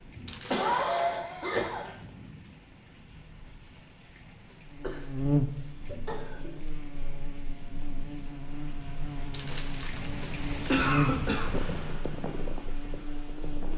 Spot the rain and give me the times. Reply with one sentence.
The rain can be heard from 0.0 to 13.7 s.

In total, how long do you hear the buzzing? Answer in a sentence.
The buzzing can be heard for 9 seconds in total.